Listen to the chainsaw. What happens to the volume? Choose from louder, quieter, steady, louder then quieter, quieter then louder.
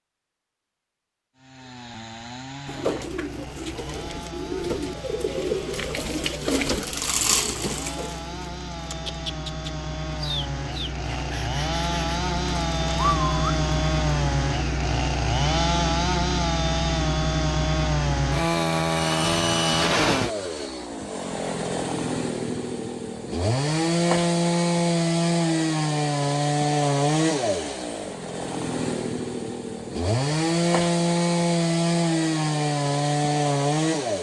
louder.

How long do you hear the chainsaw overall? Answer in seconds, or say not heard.
33 s.